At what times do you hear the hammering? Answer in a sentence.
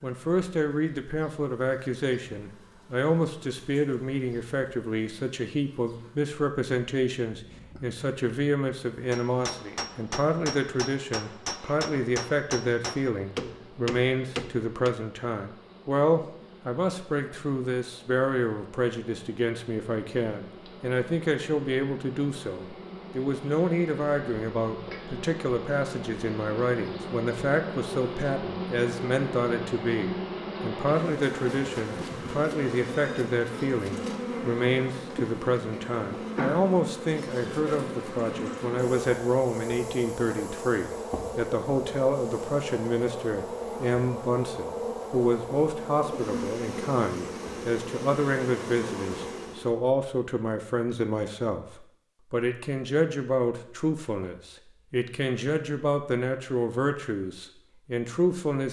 You can hear the hammering from 9.1 to 15.0 s.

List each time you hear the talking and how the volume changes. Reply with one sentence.
The talking can be heard from 0.0 to 58.6 s, at a steady volume.